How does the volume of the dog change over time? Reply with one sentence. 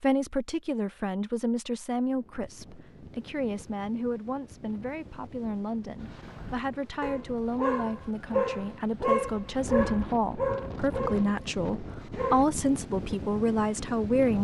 The loudness of the dog goes up, then down.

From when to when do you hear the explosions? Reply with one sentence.
You can't hear the explosions here.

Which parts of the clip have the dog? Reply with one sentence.
You can hear the dog from 6.0 to 12.4 s.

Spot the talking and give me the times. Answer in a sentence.
You can hear the talking from 0.0 to 14.3 s.